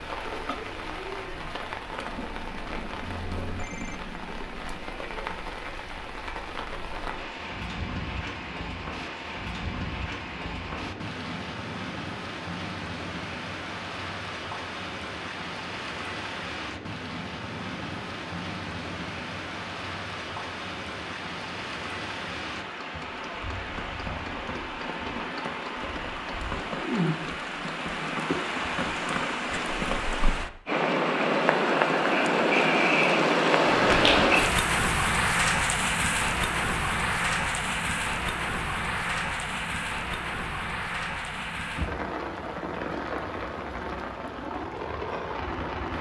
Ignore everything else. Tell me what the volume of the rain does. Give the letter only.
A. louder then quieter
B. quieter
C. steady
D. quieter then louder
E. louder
A.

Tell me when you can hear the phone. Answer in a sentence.
The phone can be heard from 3.0 to 4.1 s.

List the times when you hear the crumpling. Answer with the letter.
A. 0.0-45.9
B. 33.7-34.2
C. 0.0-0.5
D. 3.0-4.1
B.